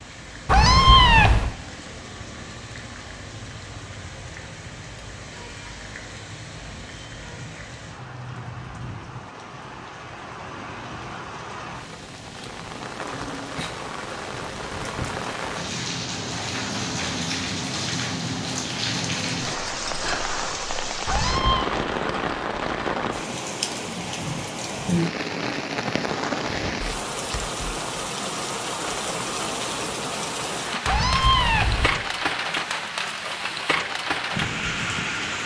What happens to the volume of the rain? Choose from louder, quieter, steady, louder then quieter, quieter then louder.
louder.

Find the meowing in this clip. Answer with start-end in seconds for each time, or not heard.
0.5-1.6, 21.1-21.7, 30.9-32.0.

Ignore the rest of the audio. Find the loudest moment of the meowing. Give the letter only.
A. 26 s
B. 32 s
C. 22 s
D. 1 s
D.